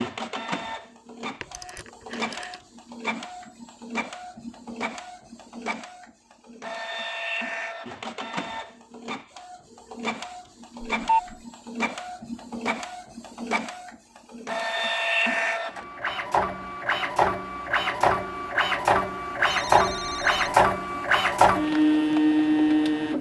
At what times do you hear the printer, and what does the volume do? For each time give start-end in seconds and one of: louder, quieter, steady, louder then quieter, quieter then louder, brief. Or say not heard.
0.0-23.1 louder.